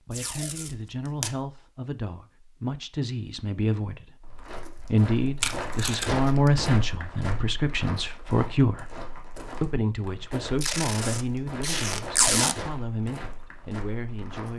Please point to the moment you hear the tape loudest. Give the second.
12 s.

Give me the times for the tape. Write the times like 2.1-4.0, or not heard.
0.1-1.3, 5.4-6.5, 10.6-12.6.